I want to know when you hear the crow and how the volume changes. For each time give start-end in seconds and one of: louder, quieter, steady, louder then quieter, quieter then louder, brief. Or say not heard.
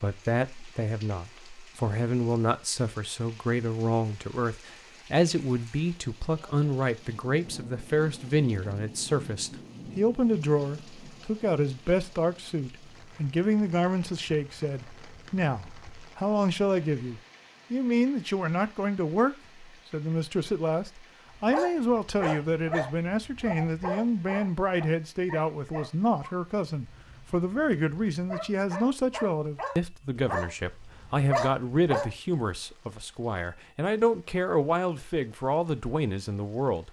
not heard.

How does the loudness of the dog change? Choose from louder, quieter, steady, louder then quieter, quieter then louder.
quieter then louder.